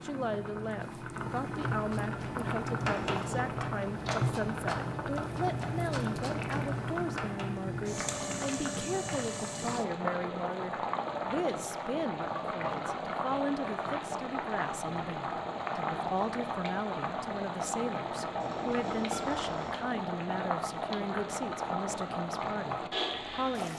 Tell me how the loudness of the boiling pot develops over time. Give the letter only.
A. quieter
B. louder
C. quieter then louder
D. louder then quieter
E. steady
E.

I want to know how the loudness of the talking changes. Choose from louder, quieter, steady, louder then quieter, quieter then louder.
steady.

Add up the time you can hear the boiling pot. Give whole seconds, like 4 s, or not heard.
24 s.